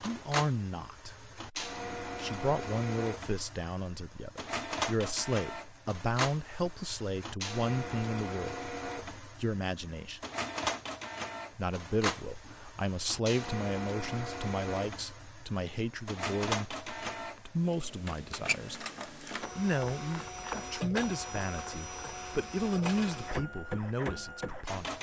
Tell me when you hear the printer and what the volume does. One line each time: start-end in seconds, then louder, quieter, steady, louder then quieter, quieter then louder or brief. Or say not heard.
0.0-24.9 steady.